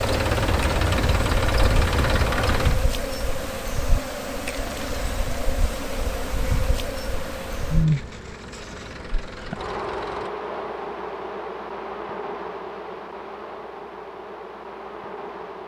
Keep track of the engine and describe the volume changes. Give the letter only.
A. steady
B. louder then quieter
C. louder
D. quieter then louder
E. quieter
E.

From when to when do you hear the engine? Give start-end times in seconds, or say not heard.
0.0-10.3.